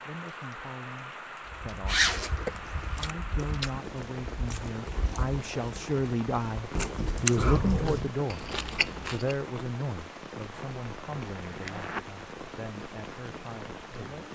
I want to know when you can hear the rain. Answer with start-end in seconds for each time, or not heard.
0.0-14.3.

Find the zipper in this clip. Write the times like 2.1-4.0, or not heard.
1.9-3.0, 7.3-8.1, 10.5-12.1.